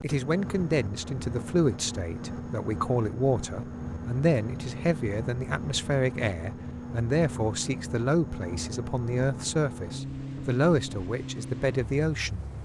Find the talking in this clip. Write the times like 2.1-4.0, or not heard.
0.0-12.4.